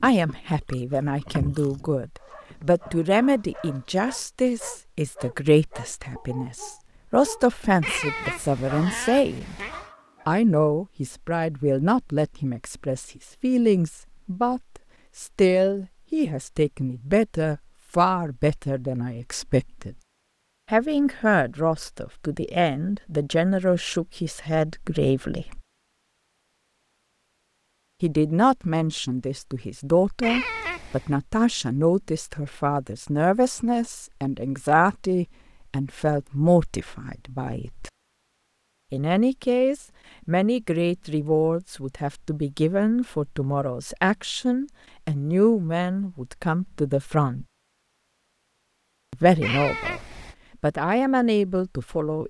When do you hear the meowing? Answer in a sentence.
The meowing can be heard from 7.8 to 9.9 s, from 30.2 to 31.1 s and from 49.4 to 50.4 s.